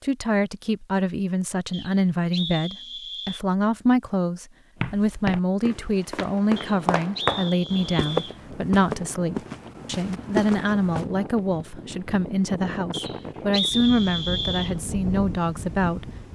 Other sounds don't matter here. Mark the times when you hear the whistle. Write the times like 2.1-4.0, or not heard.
1.7-3.4, 6.5-8.3, 12.9-14.8.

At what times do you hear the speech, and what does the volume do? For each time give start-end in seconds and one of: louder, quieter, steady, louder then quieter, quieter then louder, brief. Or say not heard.
0.0-16.1 steady.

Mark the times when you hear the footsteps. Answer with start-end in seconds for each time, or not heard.
4.8-11.1.